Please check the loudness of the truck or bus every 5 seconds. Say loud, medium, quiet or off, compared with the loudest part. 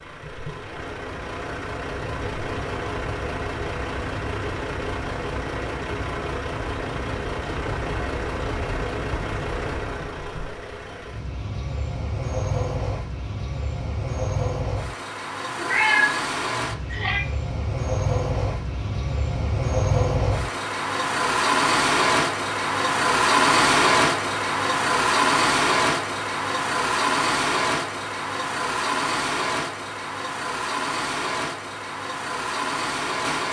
medium, medium, medium, medium, loud, loud, medium.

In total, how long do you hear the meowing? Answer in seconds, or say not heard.
2 s.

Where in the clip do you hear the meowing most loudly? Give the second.
16 s.